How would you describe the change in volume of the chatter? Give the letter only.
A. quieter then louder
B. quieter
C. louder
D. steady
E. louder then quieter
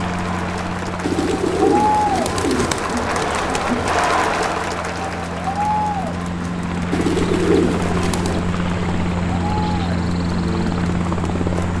B.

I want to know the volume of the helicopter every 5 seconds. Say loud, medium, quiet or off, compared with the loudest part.
medium, loud, loud.